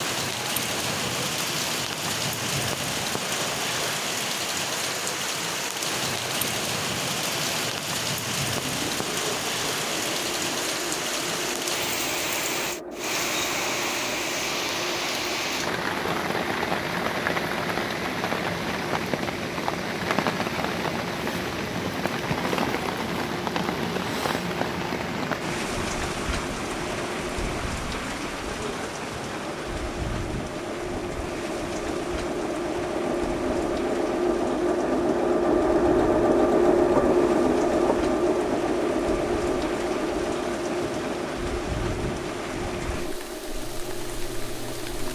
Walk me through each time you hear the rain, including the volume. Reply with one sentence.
You can hear the rain from 0.0 to 45.0 s, getting quieter.